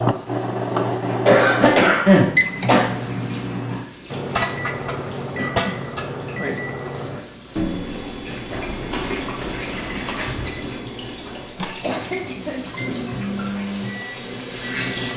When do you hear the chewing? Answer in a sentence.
You can hear the chewing from 8.5 to 10.5 s.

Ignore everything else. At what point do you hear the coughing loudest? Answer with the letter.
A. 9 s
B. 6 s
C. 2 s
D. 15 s
C.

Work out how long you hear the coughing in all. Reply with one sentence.
The coughing can be heard for 3 seconds in total.